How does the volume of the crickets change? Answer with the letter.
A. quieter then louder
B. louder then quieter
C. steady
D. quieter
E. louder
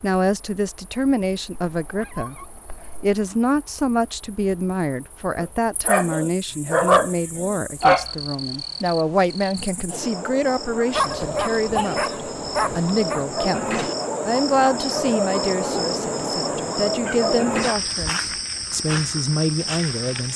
E.